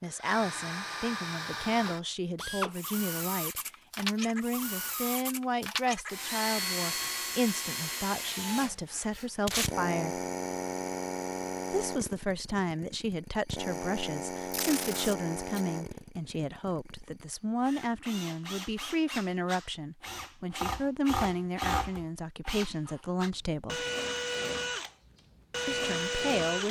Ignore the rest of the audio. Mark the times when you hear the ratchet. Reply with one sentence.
You can't hear the ratchet here.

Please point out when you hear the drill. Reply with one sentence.
You can hear the drill from 0.0 to 26.6 s.